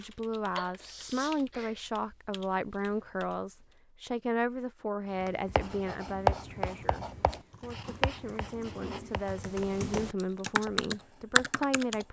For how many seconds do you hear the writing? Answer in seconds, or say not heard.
7 s.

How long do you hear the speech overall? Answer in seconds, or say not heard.
12 s.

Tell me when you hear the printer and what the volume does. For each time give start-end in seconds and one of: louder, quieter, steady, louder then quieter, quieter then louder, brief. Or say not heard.
not heard.